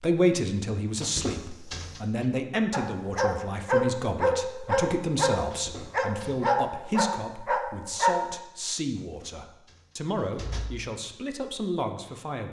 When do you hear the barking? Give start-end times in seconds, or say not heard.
2.7-8.4.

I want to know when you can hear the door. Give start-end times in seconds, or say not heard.
1.0-2.2, 5.5-6.3, 9.1-10.8.